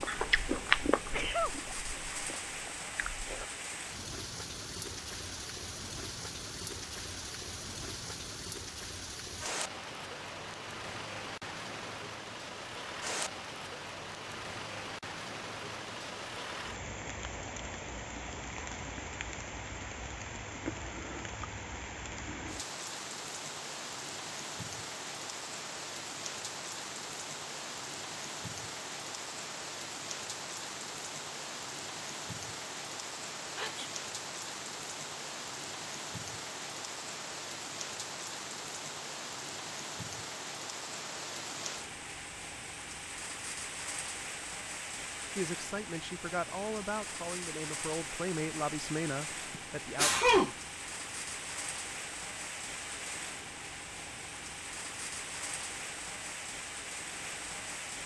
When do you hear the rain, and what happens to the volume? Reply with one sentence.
You can hear the rain from 0.0 to 58.0 s, at a steady volume.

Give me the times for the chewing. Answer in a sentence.
You can hear the chewing from 0.0 to 3.5 s.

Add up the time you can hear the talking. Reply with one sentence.
The talking can be heard for 5 seconds in total.